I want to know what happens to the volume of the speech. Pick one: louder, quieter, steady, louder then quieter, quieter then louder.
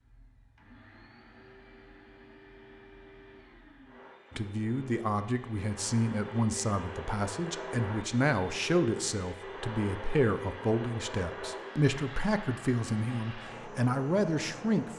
steady.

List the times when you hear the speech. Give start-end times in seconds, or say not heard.
4.3-14.9.